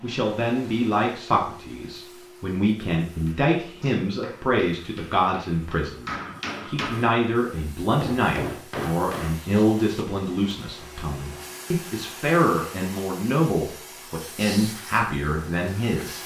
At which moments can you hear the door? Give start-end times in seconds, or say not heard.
not heard.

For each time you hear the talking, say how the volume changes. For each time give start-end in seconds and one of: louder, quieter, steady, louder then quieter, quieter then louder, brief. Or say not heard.
0.0-16.2 steady.